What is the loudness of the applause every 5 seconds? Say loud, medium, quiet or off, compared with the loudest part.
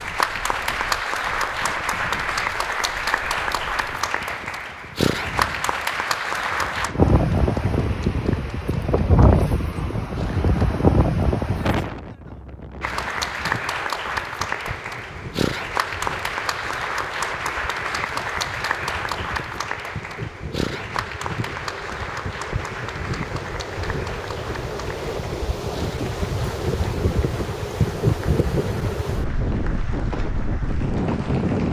loud, loud, loud, loud, medium, quiet, quiet.